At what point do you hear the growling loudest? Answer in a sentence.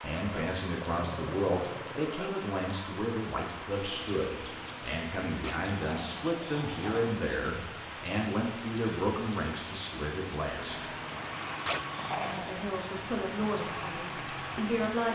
The loudest moment of the growling is at 12 seconds.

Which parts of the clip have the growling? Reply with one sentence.
The growling can be heard from 0.7 to 2.1 s, from 5.4 to 7.2 s and from 11.7 to 12.6 s.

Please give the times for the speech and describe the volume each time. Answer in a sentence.
You can hear the speech from 0.0 to 10.9 s, at a steady volume; and briefly from 12.3 to 15.1 s.